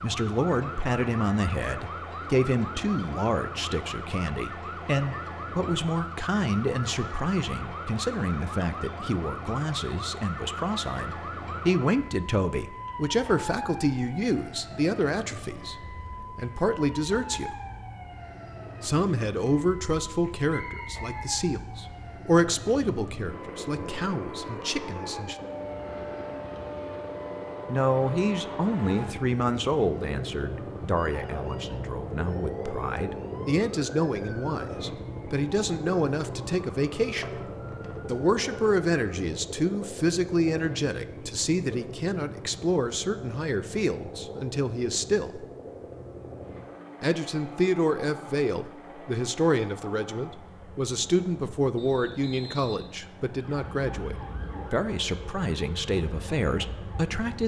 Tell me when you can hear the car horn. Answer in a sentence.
The car horn can't be heard in this clip.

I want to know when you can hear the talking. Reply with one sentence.
You can hear the talking from 0.0 to 17.6 s, from 18.8 to 25.4 s, from 27.6 to 37.4 s, from 38.0 to 45.5 s and from 47.0 to 57.4 s.